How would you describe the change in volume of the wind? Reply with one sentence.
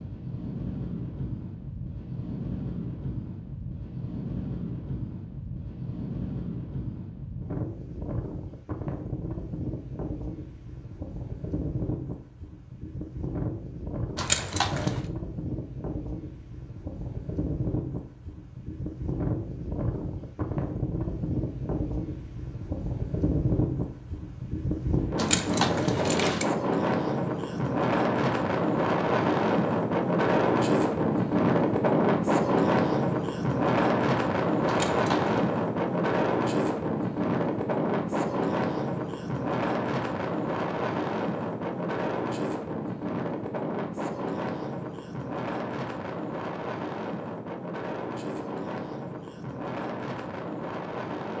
The loudness of the wind goes up, then down.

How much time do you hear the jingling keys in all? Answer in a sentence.
The jingling keys can be heard for 3 seconds in total.